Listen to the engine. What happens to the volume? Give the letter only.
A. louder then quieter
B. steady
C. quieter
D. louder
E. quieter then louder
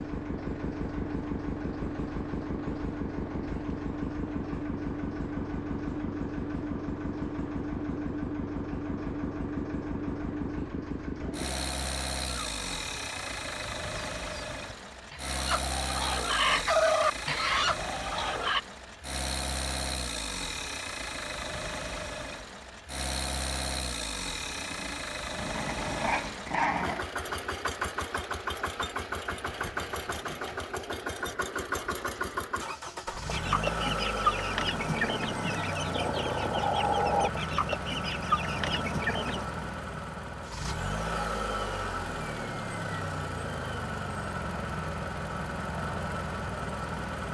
B.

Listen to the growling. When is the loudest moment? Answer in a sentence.
The loudest moment of the growling is at 27 seconds.